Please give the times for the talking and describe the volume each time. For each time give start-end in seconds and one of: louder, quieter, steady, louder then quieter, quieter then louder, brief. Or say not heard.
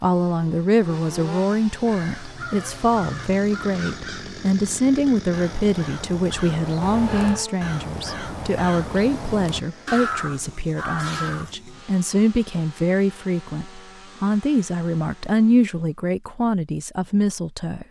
0.0-17.8 steady.